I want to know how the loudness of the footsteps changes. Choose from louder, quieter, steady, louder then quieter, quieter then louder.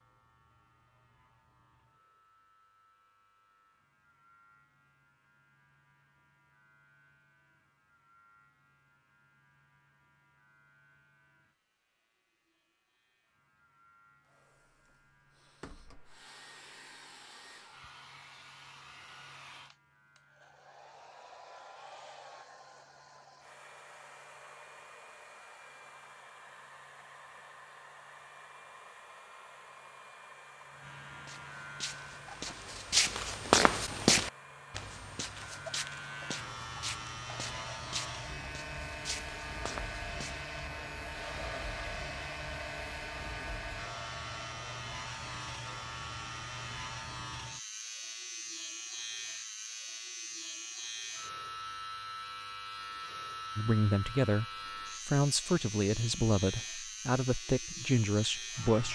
louder then quieter.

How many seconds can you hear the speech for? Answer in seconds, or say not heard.
5 s.